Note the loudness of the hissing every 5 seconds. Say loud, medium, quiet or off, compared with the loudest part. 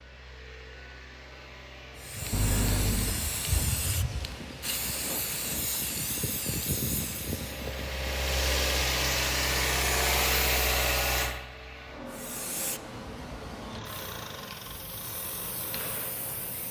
loud, loud, medium, medium.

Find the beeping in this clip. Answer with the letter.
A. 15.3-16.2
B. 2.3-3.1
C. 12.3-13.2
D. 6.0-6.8
B.